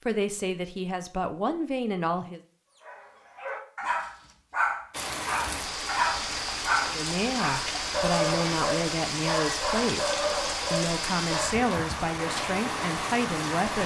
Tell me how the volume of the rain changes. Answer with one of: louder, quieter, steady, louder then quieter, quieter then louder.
steady.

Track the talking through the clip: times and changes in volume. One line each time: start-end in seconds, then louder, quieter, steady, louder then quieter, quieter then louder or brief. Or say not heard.
0.1-2.4 brief
6.9-13.8 steady.